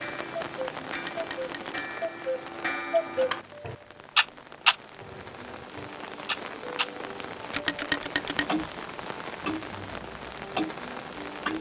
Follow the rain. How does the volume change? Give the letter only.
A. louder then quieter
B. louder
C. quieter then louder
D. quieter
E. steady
C.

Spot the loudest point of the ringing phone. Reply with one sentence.
The loudest moment of the ringing phone is at 8 seconds.